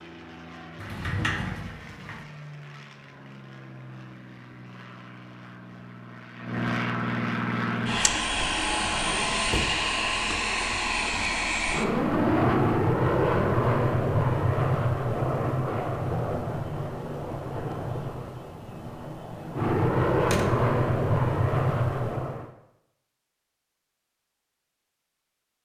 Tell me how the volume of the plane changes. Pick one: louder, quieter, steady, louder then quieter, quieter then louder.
louder.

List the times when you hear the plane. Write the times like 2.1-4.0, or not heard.
0.0-22.5.